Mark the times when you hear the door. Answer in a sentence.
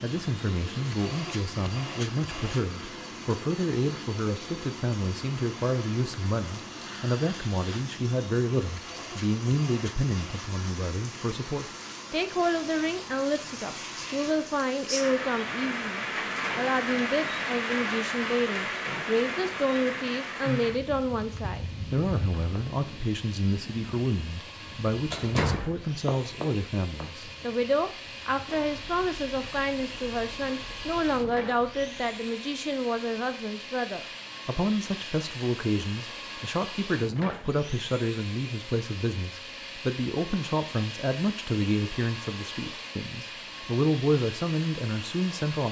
The door can be heard from 25.1 to 25.7 s.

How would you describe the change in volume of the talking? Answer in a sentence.
The volume of the talking stays about the same.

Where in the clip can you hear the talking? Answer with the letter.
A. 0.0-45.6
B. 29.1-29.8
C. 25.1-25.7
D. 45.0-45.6
A.